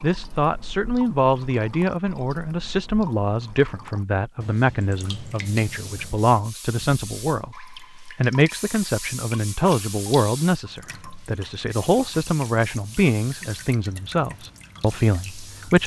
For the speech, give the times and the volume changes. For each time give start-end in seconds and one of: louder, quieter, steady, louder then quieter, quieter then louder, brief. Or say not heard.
0.0-15.8 steady.